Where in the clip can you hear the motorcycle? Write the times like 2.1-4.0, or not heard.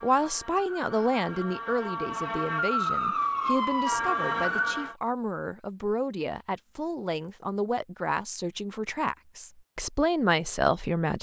not heard.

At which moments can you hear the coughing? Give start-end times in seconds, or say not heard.
not heard.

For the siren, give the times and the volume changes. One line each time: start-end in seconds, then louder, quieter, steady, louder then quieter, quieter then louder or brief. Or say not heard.
0.0-5.0 louder.